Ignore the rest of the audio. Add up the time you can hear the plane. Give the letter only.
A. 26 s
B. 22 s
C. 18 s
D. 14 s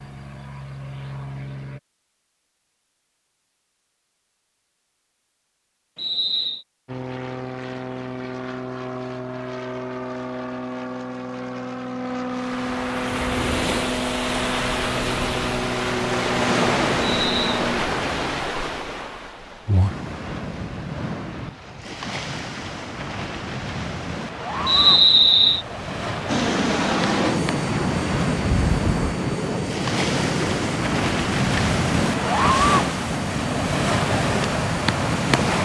B.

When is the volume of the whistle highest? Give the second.
25 s.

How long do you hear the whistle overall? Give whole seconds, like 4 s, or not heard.
2 s.